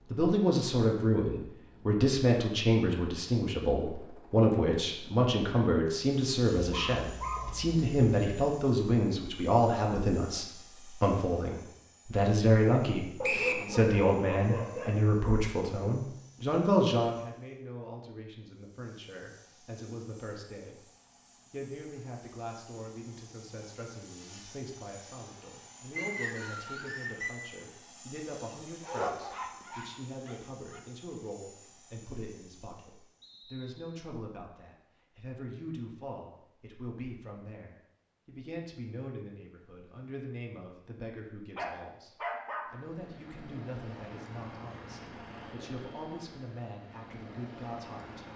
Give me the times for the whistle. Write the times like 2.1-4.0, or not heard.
13.2-13.7, 25.9-27.4, 33.2-33.9.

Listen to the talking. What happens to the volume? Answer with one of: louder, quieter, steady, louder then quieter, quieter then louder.
quieter.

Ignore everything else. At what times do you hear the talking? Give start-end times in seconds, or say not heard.
0.1-48.2.